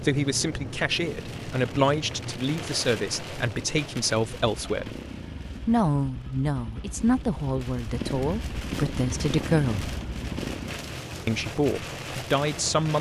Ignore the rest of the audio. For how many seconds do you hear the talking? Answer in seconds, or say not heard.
11 s.